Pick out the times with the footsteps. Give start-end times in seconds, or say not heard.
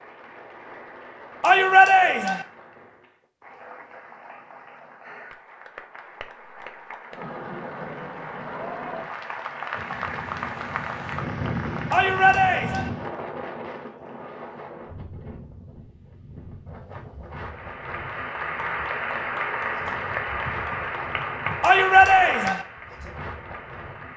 not heard.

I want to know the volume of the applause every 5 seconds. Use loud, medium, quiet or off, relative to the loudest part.
quiet, medium, loud, loud, loud.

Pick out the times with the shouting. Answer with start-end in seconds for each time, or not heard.
1.4-2.5, 11.9-12.9, 21.6-22.6.